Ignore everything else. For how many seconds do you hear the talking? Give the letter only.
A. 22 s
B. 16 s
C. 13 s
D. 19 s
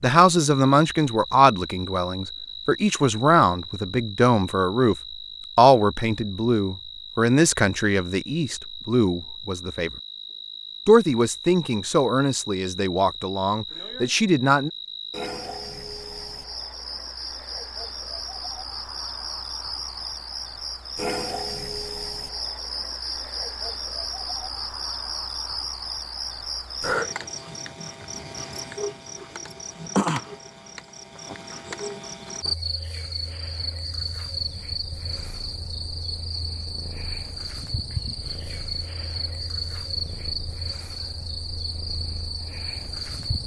C.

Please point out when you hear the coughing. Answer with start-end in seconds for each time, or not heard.
not heard.